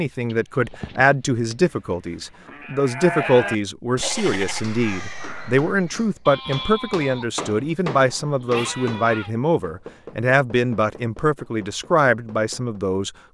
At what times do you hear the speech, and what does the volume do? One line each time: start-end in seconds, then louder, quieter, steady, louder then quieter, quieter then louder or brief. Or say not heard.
0.0-13.1 steady.